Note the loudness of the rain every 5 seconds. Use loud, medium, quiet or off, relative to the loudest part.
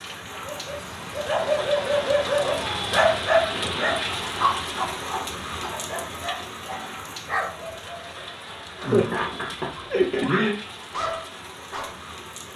loud, medium, medium.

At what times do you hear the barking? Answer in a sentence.
The barking can be heard from 0.3 to 11.9 s.